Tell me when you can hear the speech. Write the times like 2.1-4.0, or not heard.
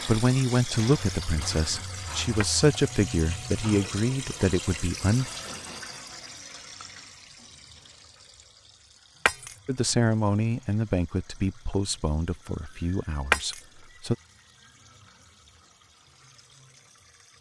0.1-5.3, 9.7-14.2.